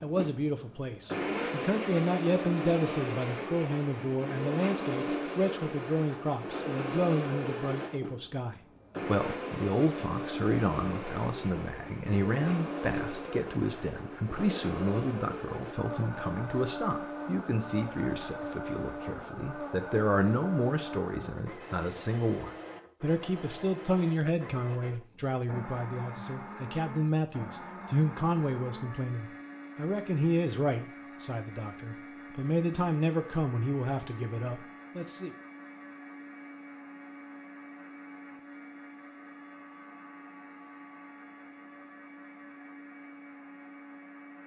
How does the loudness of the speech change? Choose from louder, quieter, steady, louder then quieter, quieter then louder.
steady.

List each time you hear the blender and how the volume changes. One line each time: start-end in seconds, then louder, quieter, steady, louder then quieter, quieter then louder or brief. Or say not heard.
0.0-44.4 quieter.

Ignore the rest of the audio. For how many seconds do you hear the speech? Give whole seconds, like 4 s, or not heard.
35 s.